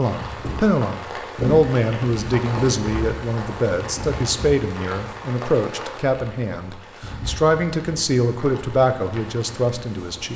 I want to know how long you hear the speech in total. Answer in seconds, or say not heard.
10 s.